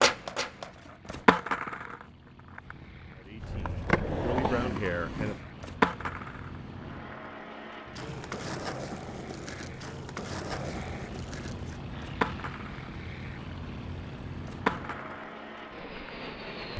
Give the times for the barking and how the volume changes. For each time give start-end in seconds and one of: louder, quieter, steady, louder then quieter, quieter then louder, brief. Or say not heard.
not heard.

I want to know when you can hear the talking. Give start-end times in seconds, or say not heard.
3.1-5.3.